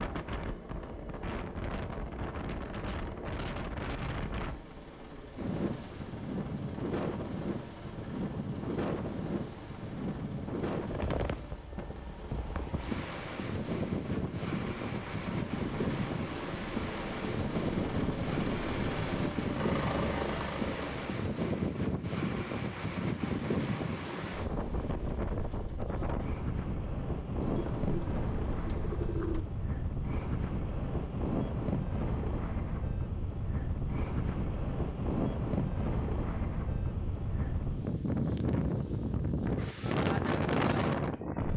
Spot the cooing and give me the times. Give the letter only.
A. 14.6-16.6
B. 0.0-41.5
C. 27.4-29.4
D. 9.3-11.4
C.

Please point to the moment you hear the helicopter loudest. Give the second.
20 s.